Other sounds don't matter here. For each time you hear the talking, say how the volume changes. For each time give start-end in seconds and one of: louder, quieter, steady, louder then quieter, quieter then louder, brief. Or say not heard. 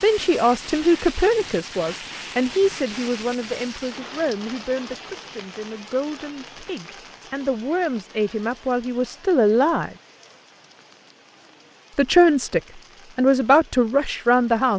0.0-9.9 quieter then louder
11.9-14.7 brief.